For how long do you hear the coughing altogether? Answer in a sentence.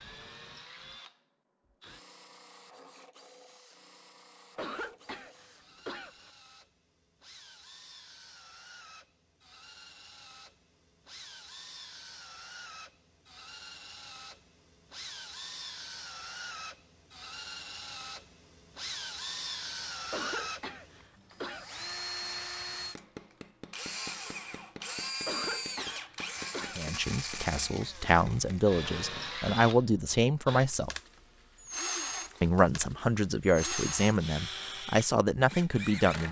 You can hear the coughing for 5 seconds altogether.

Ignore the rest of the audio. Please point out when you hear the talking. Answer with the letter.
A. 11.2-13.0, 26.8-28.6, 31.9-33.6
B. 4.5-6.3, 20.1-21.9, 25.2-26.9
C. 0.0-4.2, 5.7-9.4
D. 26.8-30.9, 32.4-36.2
D.